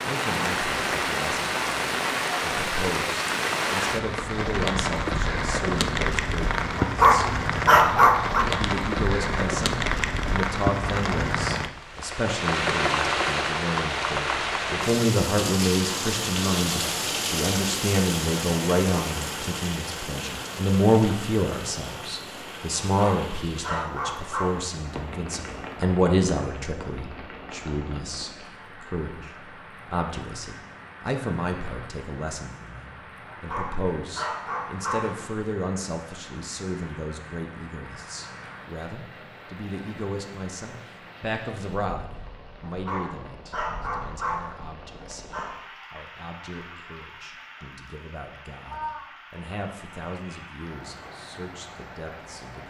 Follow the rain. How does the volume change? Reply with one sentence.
The volume of the rain goes down.